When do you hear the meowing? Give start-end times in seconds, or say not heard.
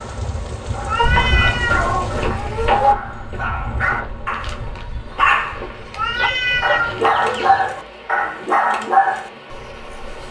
0.8-1.9, 6.0-7.0.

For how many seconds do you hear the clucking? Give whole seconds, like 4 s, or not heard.
4 s.